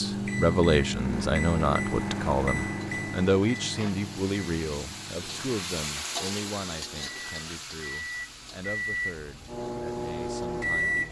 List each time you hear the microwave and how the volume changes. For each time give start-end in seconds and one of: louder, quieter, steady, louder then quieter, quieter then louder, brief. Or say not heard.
0.0-11.0 quieter then louder.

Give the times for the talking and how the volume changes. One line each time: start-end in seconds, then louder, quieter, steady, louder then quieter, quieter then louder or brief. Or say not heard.
0.0-11.0 quieter.